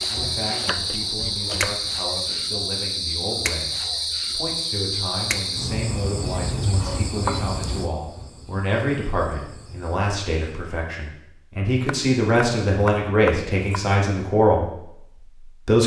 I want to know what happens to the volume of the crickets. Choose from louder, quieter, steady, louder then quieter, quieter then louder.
quieter.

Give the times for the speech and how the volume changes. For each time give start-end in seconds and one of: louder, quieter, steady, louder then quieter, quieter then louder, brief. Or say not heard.
0.1-15.8 louder.